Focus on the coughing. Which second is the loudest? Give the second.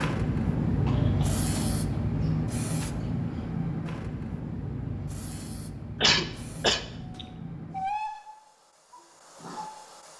6 s.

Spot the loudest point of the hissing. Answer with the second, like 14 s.
1 s.